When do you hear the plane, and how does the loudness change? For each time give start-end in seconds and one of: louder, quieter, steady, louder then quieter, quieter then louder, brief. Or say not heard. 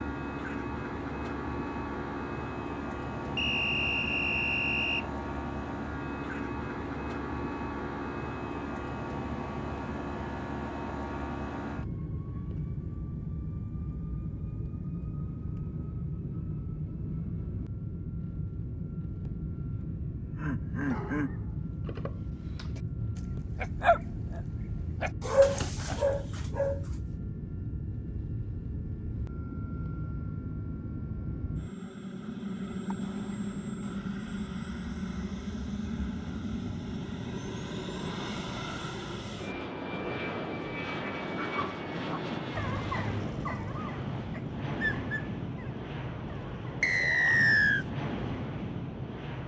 0.0-49.4 steady.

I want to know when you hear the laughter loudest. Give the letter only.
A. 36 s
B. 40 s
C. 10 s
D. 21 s
D.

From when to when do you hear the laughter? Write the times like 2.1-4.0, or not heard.
19.8-21.3.